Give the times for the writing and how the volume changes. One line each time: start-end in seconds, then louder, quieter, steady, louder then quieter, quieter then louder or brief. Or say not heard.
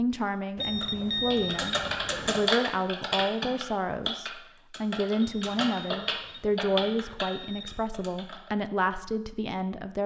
not heard.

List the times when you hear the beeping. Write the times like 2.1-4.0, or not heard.
0.6-2.5, 5.2-7.9.